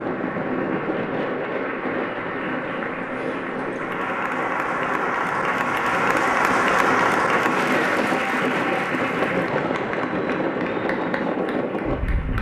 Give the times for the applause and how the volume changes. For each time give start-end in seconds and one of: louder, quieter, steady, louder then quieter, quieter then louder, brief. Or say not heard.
0.0-12.3 louder then quieter.